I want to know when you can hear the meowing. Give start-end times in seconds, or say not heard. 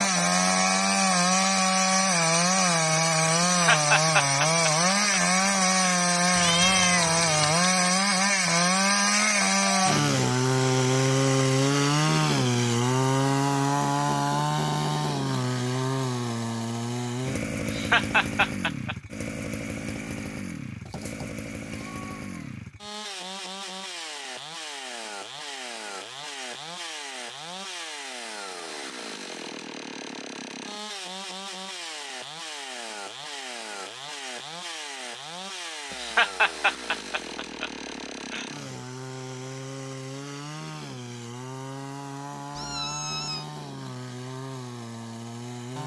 6.3-7.7, 20.9-22.6, 42.5-43.5.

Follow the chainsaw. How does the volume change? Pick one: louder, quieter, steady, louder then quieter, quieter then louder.
quieter.